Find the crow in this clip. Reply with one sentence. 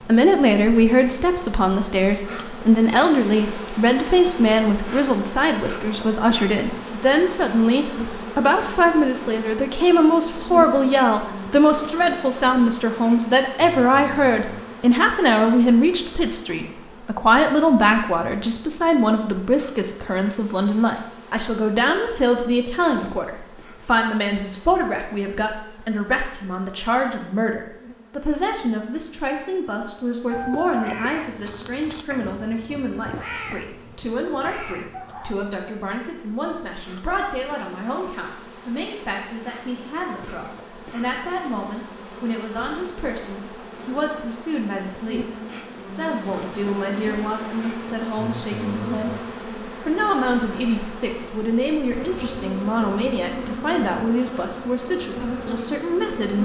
You can hear the crow from 30.3 to 35.4 s.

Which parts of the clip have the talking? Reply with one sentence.
The talking can be heard from 0.1 to 49.2 s and from 49.8 to 56.3 s.